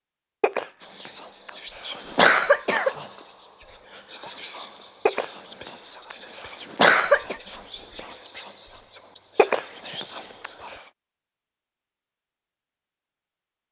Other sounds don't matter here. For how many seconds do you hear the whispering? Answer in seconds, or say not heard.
10 s.